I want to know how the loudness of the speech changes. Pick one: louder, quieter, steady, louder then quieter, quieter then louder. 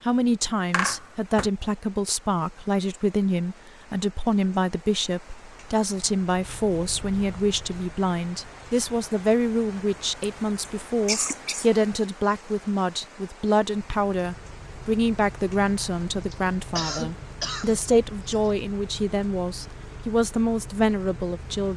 steady.